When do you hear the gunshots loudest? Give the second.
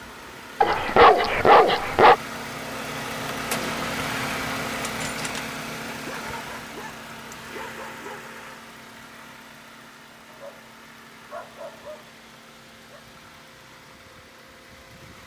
4 s.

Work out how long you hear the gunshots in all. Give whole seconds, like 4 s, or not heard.
2 s.